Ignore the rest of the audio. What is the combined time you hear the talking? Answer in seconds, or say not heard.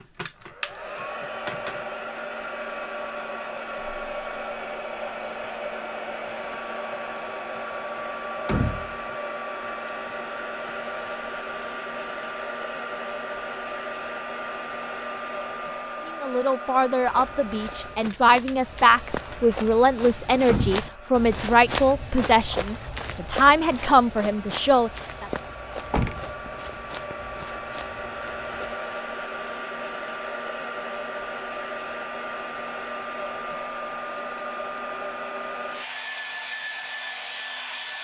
9 s.